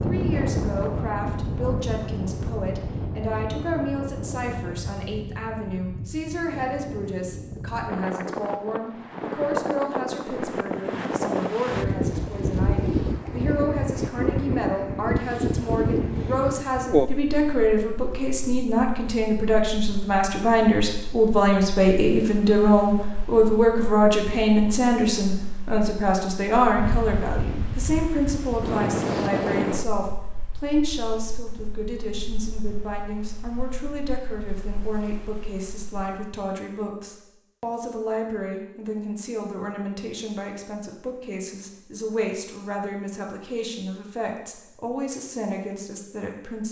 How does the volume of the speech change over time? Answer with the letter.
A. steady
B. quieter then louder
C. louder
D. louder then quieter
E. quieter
D.